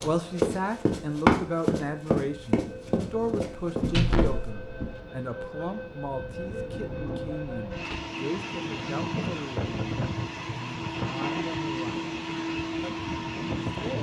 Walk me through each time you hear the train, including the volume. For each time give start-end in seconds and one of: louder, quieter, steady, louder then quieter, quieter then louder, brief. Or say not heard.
0.0-13.9 louder.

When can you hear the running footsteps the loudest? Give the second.
1 s.